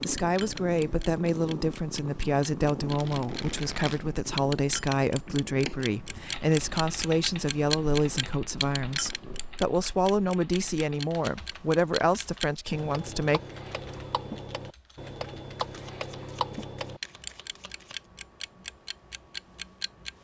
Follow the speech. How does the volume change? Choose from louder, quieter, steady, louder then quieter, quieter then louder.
steady.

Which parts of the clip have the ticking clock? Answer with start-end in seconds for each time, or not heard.
0.0-20.1.